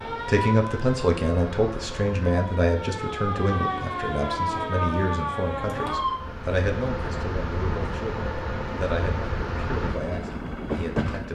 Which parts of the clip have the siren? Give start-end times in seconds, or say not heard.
0.0-6.2.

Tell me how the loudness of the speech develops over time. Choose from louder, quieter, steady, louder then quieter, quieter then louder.
quieter.